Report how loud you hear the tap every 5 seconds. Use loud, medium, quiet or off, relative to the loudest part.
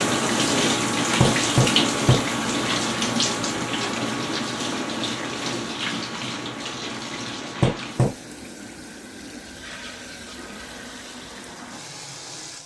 loud, medium, quiet.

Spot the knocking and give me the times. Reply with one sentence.
You can hear the knocking from 1.2 to 2.2 s and from 7.6 to 8.2 s.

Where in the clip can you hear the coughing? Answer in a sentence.
The coughing can't be heard in this clip.